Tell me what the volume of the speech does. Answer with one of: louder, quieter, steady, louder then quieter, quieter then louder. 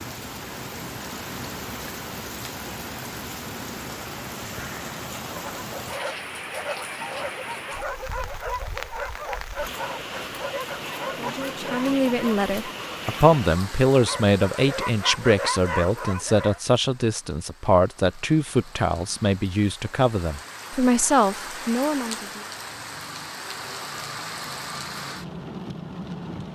steady.